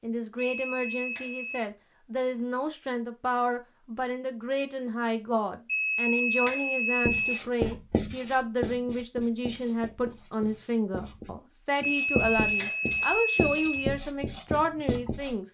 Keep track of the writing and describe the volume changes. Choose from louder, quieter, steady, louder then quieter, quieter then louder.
quieter then louder.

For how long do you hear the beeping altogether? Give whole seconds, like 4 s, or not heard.
5 s.